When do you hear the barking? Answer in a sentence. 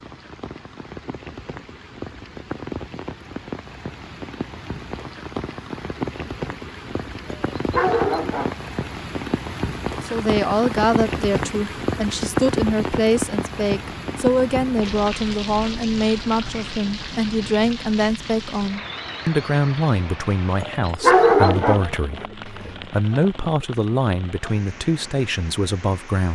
You can hear the barking from 7.3 to 8.7 s and from 20.6 to 22.8 s.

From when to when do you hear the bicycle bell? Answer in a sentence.
You can't hear the bicycle bell here.